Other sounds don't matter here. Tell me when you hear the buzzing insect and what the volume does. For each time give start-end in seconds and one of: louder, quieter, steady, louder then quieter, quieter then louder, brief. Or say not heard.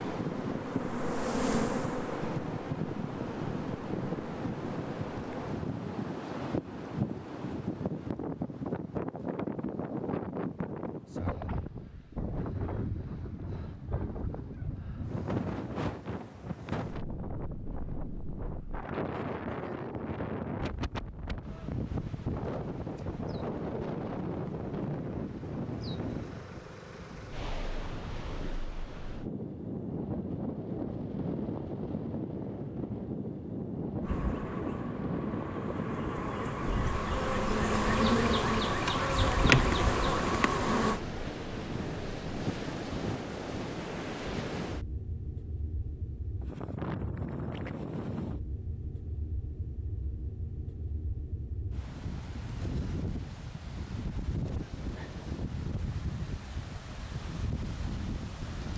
0.2-5.5 quieter
34.0-41.0 louder.